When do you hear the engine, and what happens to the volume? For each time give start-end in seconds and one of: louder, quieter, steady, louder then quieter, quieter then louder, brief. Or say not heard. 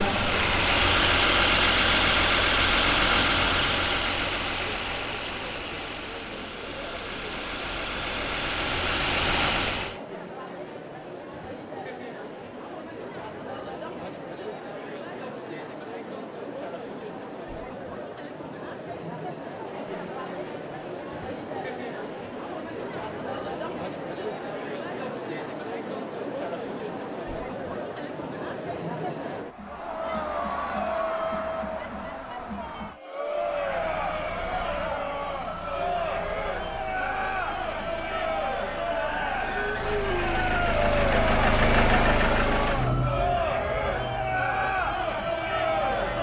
0.0-10.0 quieter then louder
33.3-46.1 louder then quieter.